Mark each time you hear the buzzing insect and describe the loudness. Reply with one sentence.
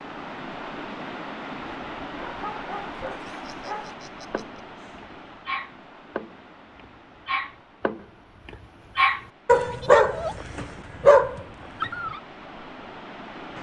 The buzzing insect can't be heard in this clip.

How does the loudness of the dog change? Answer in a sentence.
The volume of the dog goes up.